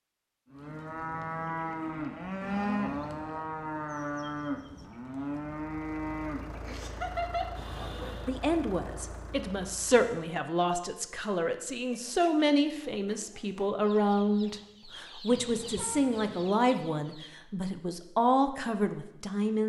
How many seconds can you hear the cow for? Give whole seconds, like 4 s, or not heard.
8 s.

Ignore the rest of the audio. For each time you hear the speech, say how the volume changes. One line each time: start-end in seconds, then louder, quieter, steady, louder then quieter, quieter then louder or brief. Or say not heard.
8.2-19.6 steady.